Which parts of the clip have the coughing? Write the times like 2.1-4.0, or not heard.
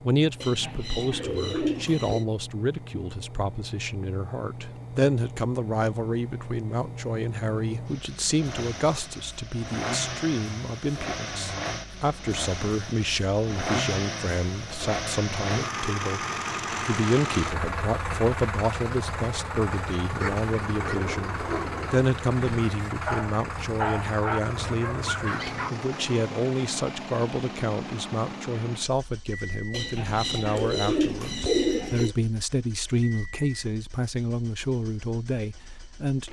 not heard.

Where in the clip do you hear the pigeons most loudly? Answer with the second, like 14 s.
32 s.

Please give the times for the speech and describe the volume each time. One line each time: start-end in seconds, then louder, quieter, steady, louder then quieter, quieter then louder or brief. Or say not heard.
0.0-36.2 steady.